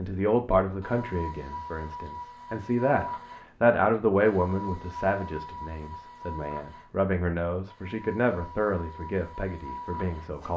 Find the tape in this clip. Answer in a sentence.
The tape can't be heard in this clip.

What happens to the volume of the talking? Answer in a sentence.
The volume of the talking goes up, then down.